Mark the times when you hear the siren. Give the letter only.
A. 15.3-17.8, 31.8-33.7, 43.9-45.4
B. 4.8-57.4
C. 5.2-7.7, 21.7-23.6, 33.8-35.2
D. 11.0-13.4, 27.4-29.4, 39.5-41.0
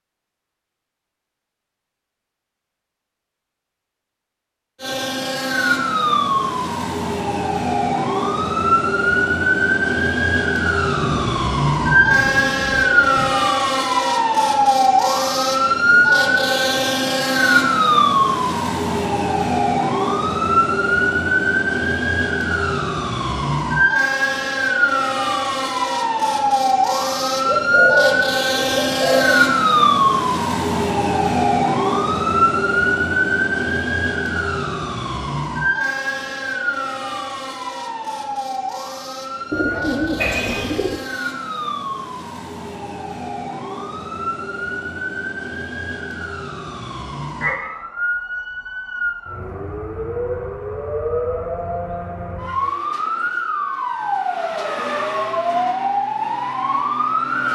B.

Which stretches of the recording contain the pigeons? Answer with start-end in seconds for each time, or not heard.
11.0-13.4, 27.4-29.4, 39.5-41.0.